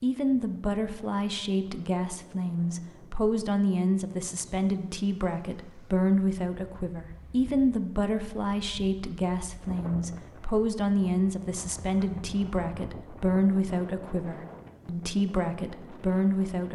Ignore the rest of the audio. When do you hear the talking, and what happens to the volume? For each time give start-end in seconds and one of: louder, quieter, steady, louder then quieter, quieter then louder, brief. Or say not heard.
0.0-16.6 steady.